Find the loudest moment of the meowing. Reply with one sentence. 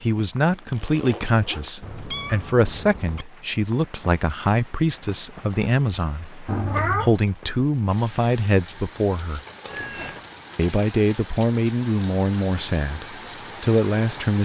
The volume of the meowing peaks at 7 seconds.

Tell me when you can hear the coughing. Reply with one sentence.
The coughing can't be heard in this clip.